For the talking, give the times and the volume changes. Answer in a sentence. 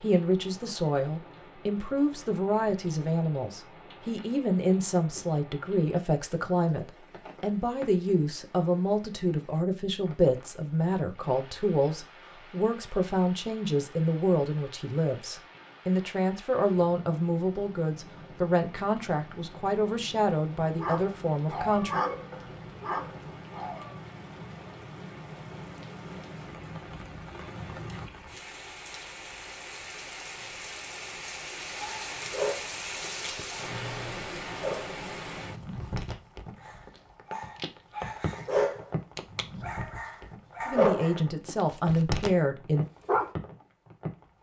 You can hear the talking from 0.0 to 22.0 s, at a steady volume; and briefly from 40.6 to 42.9 s.